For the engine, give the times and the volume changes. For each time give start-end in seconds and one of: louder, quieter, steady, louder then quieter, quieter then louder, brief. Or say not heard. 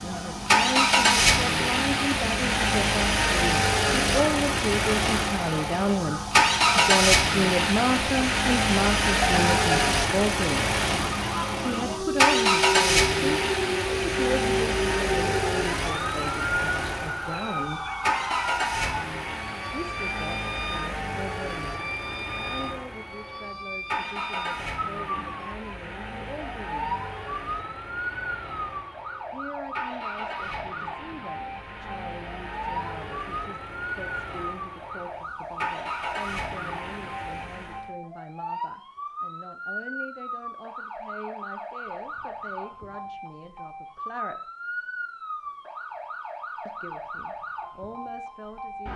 0.0-37.9 quieter.